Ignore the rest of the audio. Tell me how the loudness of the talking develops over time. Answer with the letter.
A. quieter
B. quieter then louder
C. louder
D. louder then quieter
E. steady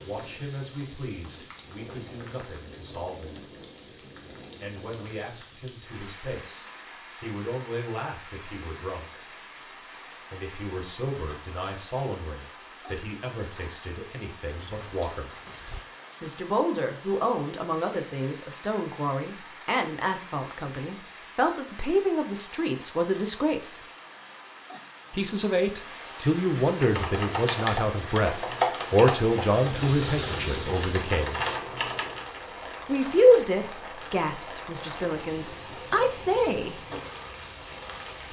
C.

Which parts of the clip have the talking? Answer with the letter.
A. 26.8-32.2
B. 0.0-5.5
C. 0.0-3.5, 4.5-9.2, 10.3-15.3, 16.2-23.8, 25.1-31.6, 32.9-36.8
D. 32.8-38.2
C.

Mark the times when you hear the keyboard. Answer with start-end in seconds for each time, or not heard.
26.8-32.2.